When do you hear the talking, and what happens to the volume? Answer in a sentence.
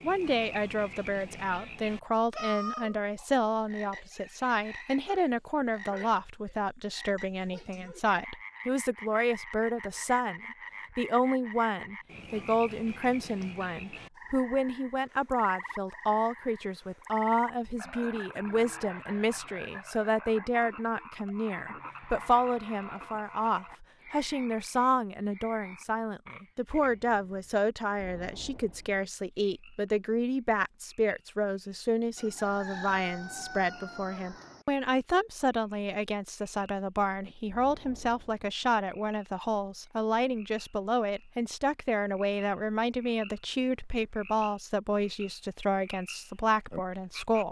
The talking can be heard from 0.0 to 47.4 s, at a steady volume.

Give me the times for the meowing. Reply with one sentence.
You can't hear the meowing here.